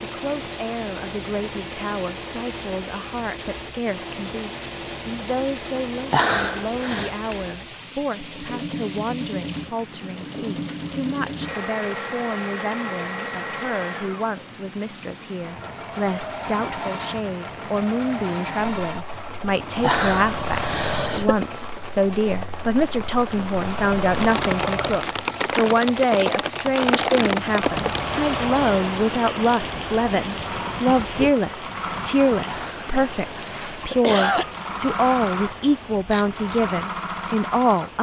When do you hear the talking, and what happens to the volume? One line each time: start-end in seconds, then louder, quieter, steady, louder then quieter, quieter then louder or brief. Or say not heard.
0.0-37.9 louder.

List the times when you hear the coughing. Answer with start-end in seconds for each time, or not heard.
6.1-7.1, 19.8-21.4, 32.5-34.5.